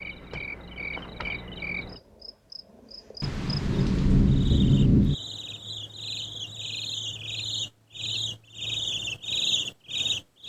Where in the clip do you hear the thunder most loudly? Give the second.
5 s.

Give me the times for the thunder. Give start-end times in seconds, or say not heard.
3.2-5.2.